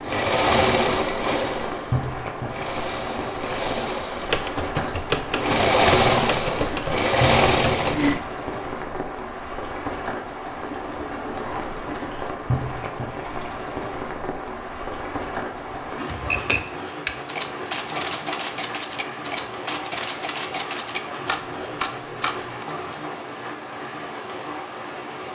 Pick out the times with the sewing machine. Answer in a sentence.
You can hear the sewing machine from 0.0 to 8.2 s.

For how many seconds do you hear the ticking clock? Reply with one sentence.
You can't hear the ticking clock here.